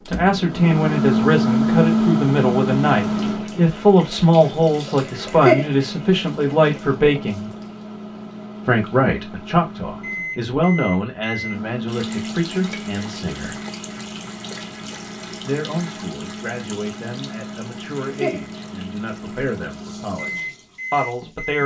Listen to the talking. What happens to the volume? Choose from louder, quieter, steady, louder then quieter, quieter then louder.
quieter.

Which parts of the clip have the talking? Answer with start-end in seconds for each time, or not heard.
0.0-7.5, 8.7-13.6, 15.4-21.6.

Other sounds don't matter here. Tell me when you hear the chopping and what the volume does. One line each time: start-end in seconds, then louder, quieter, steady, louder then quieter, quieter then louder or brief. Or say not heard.
not heard.